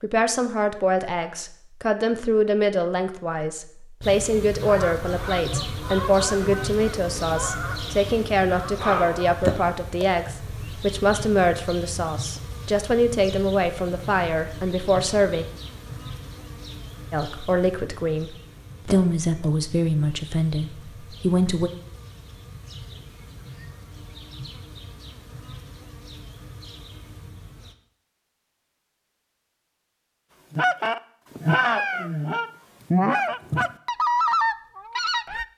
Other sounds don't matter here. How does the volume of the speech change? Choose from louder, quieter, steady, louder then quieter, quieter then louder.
steady.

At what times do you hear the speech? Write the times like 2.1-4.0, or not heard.
0.0-15.4, 17.1-21.7.